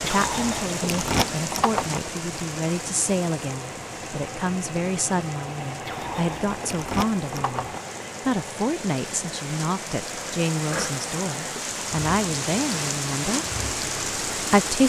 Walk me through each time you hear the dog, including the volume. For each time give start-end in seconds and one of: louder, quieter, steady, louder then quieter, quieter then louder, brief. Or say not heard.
not heard.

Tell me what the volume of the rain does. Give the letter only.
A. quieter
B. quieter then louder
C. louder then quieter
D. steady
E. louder
B.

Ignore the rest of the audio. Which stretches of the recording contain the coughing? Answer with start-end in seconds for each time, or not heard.
not heard.